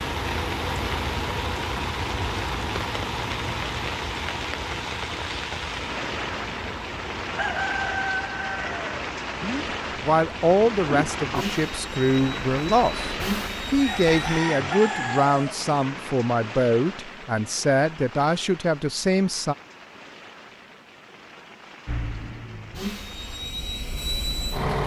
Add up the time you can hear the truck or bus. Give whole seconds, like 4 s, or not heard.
17 s.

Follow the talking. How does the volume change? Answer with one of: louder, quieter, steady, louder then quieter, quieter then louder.
steady.